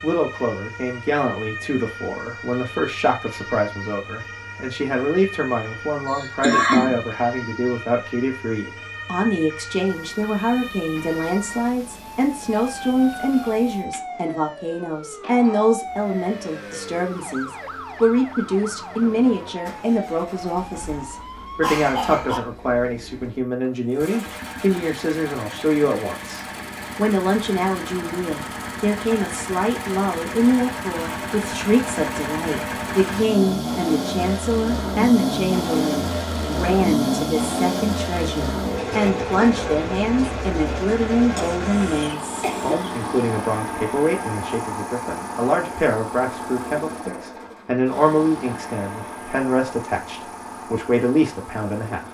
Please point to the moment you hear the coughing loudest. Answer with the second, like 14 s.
7 s.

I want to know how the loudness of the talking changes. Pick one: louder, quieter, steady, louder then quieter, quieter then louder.
steady.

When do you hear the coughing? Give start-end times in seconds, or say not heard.
6.0-7.0, 21.6-22.4, 41.4-42.9.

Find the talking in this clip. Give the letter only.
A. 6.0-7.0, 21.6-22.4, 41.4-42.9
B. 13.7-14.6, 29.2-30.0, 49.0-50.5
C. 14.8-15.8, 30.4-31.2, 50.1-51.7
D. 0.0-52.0
D.